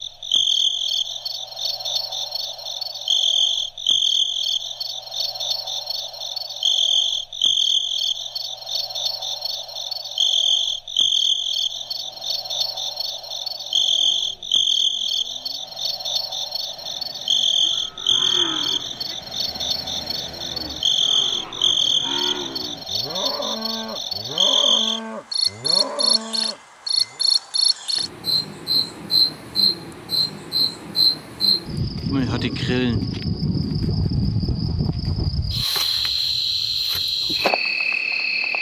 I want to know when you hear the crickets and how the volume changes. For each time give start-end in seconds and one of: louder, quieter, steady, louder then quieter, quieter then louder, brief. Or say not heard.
0.0-38.5 steady.